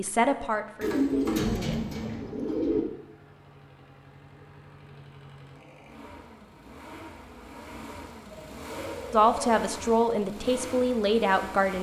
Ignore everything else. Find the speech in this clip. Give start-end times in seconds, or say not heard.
0.0-1.9, 9.1-11.7.